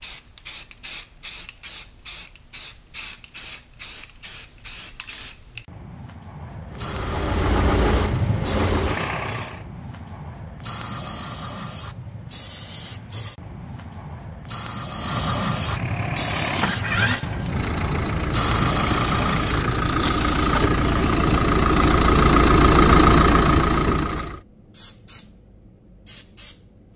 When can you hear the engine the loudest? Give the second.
23 s.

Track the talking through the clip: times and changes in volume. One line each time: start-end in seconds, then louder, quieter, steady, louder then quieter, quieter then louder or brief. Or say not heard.
not heard.